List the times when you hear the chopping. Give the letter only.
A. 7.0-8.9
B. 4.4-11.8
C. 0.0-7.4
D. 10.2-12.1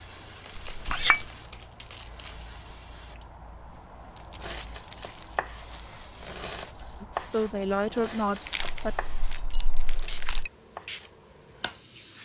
B.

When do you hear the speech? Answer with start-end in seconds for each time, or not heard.
7.0-8.9.